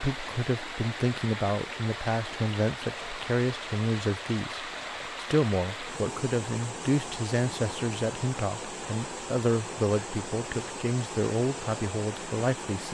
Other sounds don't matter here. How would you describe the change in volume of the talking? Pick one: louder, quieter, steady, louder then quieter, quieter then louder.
steady.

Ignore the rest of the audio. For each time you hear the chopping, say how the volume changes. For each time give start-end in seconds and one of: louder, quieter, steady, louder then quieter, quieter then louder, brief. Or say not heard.
not heard.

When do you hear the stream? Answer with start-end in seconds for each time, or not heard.
0.0-12.8.